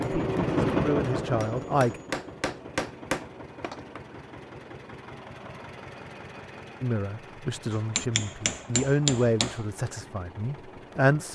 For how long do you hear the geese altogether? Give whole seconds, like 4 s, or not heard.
not heard.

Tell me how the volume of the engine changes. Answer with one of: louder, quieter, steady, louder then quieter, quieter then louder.
quieter.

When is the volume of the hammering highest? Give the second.
9 s.